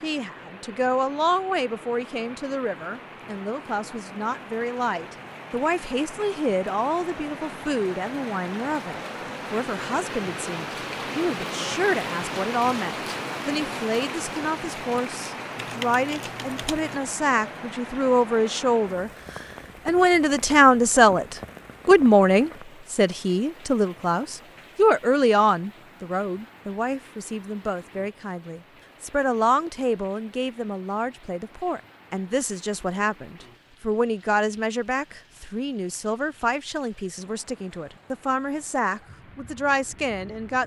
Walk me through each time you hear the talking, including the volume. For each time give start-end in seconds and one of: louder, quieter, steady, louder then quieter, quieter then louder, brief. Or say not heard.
0.0-40.6 louder then quieter.